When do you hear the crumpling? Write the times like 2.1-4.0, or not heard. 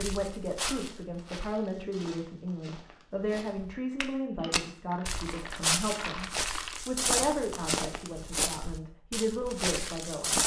4.3-6.8.